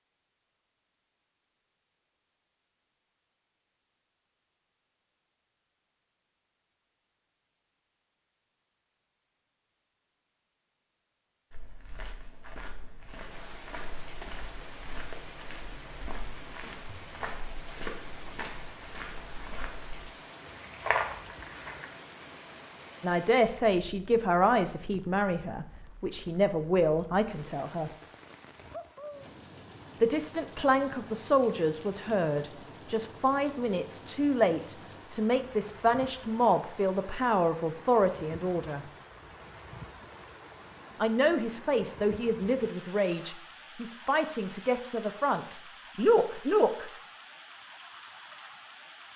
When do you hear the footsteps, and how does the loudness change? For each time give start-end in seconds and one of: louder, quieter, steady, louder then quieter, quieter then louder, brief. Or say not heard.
11.5-21.9 louder.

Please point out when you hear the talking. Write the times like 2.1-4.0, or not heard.
23.0-27.9, 30.0-38.9, 41.0-46.9.